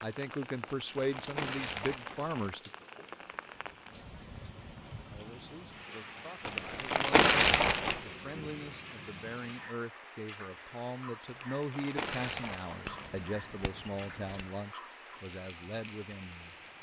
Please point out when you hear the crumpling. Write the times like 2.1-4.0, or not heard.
0.7-2.5, 6.5-8.0, 11.2-13.1.